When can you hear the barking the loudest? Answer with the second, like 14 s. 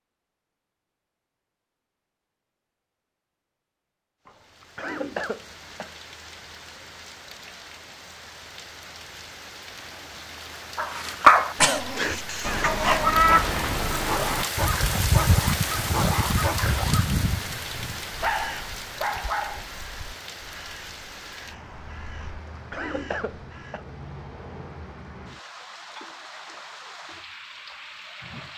11 s.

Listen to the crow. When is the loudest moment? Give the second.
13 s.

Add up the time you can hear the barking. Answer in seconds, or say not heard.
9 s.